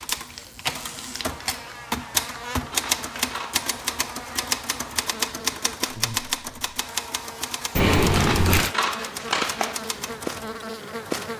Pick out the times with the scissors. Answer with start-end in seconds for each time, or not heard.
2.6-3.6, 8.1-9.9.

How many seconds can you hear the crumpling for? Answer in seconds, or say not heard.
2 s.